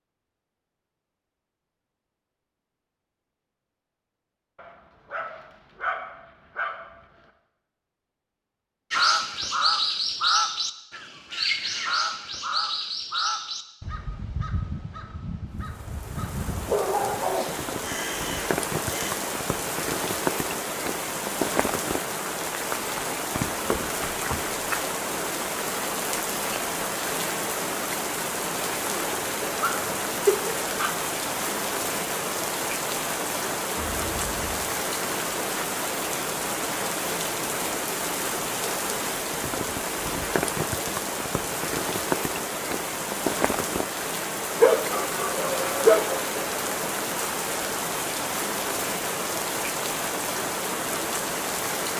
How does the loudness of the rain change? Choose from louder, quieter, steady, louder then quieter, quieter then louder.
steady.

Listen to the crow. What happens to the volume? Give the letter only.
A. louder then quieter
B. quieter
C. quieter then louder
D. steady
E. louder
B.